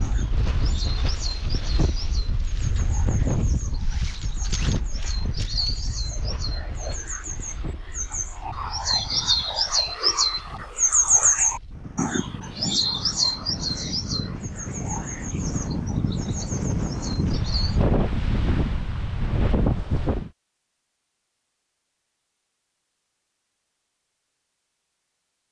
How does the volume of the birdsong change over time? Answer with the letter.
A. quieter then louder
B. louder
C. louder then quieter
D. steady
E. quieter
C.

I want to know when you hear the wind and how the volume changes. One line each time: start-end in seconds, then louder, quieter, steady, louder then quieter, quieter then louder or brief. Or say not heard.
0.0-20.3 quieter then louder.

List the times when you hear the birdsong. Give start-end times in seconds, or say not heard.
0.0-17.8.